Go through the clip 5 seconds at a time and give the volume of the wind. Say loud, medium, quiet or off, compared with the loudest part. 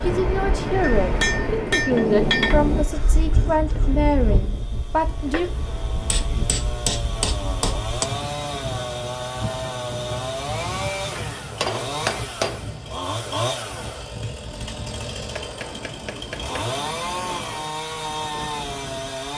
loud, medium, medium, medium.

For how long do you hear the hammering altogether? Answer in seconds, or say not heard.
7 s.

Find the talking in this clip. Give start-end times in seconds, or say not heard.
0.0-5.5.